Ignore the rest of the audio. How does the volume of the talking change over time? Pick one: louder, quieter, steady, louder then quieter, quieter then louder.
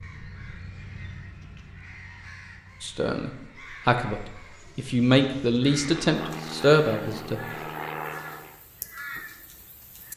quieter then louder.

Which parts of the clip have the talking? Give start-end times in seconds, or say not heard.
2.8-7.4.